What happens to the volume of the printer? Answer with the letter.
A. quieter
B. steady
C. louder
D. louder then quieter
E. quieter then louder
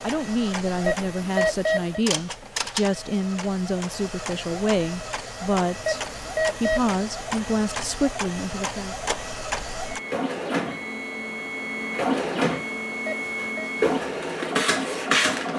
C.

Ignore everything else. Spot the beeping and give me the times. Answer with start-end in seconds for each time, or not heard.
0.8-2.0, 5.8-6.9, 13.1-13.7.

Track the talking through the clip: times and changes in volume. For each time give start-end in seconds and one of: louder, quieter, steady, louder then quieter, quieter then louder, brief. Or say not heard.
0.0-8.9 steady.